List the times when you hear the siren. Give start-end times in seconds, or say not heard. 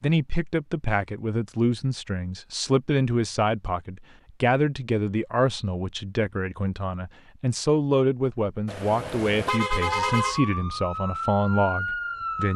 9.8-12.5.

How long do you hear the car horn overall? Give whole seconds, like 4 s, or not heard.
2 s.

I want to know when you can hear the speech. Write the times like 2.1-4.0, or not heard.
0.0-12.5.